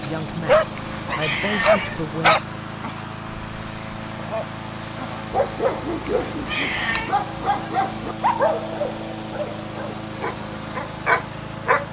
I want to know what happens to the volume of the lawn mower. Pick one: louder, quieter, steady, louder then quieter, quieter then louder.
steady.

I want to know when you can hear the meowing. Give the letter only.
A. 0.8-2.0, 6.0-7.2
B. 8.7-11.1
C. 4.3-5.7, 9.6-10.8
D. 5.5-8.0
A.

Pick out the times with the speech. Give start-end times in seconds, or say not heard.
0.0-2.4.